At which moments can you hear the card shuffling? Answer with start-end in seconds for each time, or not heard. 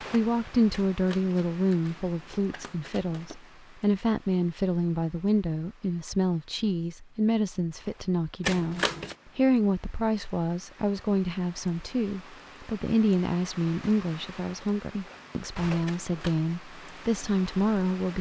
0.7-3.4, 8.4-9.2, 15.8-16.5.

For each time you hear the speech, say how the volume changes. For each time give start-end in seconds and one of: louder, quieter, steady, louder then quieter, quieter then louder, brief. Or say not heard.
0.0-18.1 steady.